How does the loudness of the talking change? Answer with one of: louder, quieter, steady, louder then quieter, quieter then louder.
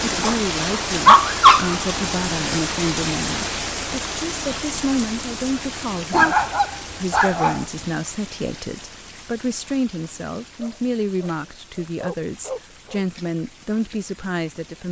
steady.